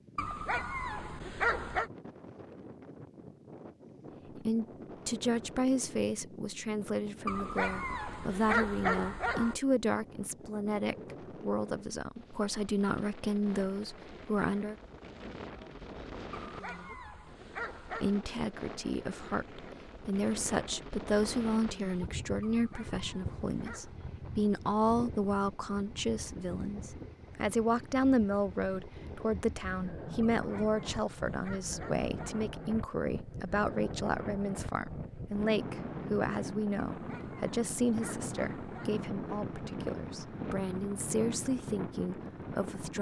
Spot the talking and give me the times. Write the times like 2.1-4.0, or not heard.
4.3-14.8, 17.9-42.9.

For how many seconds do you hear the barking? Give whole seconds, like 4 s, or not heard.
12 s.